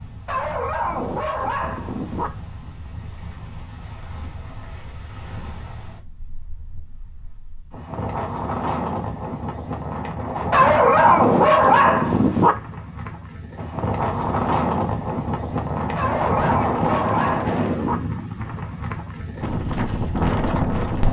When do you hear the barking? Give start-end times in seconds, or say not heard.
0.2-2.3, 10.5-12.6, 15.9-18.0.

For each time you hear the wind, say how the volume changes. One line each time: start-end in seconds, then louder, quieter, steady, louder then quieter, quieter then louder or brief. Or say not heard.
0.0-21.0 louder.